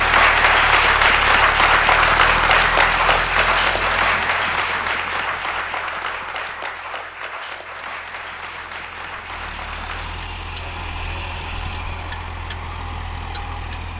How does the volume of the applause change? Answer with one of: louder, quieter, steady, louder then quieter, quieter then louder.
quieter.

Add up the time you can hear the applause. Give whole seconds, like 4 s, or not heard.
10 s.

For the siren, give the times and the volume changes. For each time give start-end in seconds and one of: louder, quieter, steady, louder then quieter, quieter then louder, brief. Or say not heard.
not heard.